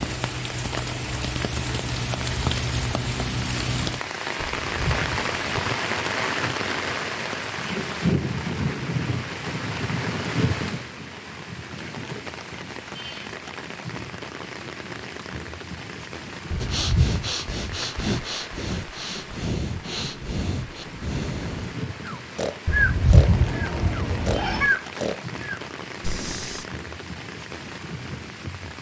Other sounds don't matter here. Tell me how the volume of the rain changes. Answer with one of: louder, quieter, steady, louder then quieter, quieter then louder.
quieter.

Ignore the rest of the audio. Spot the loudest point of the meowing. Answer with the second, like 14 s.
23 s.